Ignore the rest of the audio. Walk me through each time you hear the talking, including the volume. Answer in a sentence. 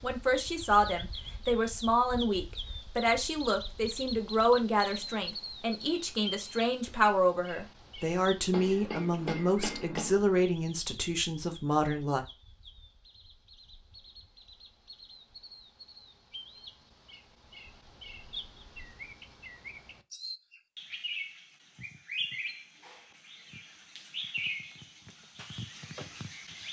The talking can be heard from 0.0 to 12.2 s, at a steady volume.